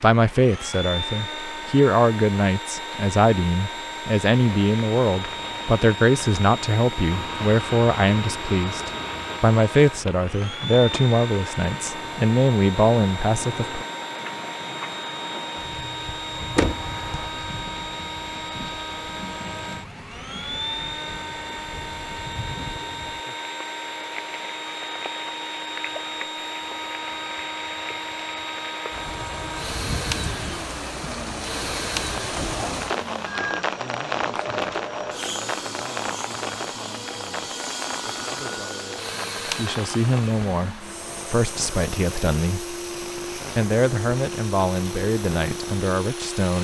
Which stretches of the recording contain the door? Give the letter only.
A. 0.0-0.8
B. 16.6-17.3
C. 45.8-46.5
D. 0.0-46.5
B.